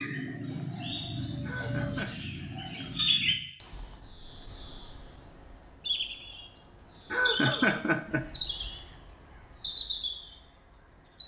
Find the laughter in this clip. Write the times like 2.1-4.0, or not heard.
1.4-2.2, 7.1-8.3.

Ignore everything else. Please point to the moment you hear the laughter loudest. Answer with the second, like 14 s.
8 s.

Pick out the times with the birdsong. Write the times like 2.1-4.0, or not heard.
0.0-11.2.